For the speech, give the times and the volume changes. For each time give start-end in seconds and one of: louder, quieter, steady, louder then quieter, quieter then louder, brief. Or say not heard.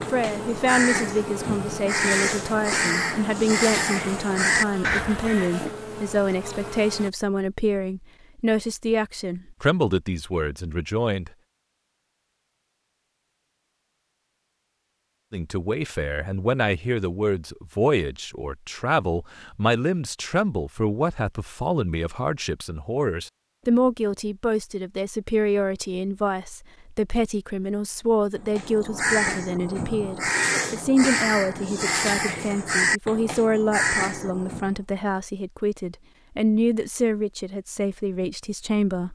0.1-11.3 steady
15.3-39.1 steady.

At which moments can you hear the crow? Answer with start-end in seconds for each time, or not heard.
0.0-5.5, 28.4-34.8.